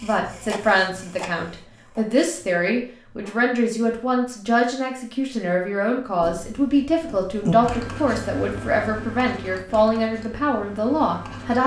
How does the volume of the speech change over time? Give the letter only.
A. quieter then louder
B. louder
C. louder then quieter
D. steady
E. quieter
D.